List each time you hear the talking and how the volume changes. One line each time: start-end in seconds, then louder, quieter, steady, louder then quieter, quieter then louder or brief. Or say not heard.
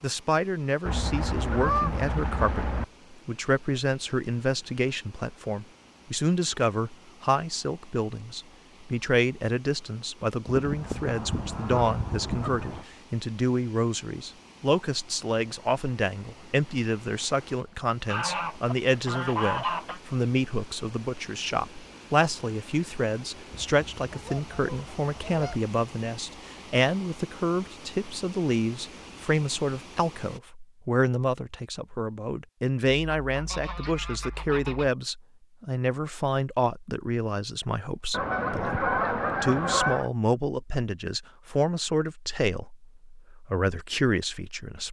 0.0-44.8 steady.